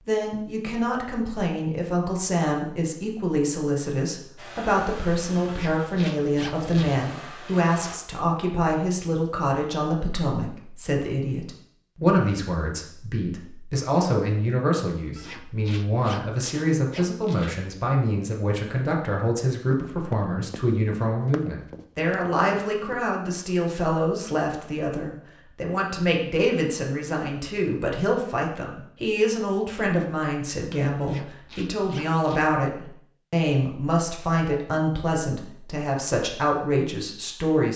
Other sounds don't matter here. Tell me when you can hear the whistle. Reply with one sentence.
You can't hear the whistle here.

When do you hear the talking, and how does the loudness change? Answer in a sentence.
The talking can be heard from 0.1 to 37.7 s, at a steady volume.